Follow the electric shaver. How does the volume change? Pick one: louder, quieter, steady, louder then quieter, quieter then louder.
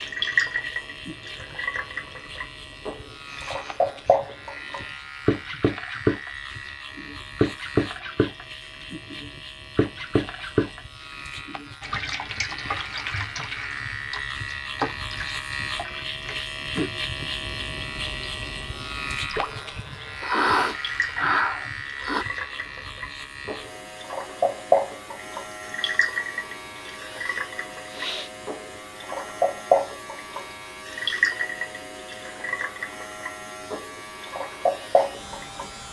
louder then quieter.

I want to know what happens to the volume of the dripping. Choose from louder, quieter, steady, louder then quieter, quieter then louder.
quieter then louder.